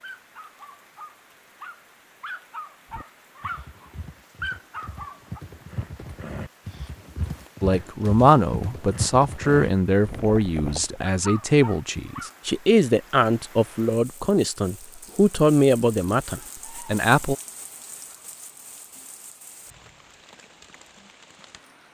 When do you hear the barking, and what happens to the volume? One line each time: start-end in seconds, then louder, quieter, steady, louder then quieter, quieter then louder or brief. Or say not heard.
0.0-5.4 louder
11.1-12.3 brief.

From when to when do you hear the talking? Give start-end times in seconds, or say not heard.
7.6-17.4.